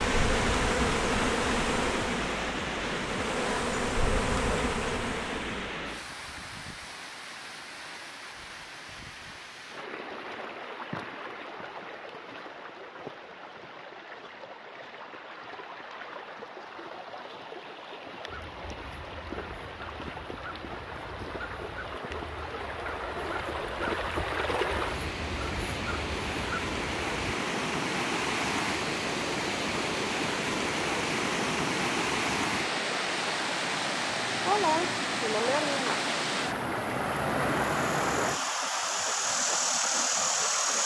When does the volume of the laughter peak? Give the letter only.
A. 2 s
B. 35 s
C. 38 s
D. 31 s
B.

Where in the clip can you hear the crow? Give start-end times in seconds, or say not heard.
18.2-27.1.